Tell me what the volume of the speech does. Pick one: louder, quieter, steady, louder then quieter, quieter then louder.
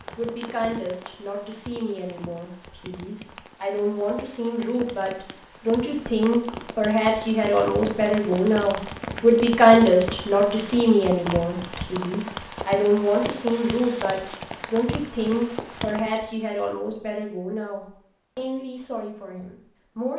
louder then quieter.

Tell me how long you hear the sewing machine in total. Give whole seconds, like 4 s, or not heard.
not heard.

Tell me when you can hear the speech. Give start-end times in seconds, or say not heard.
0.1-20.1.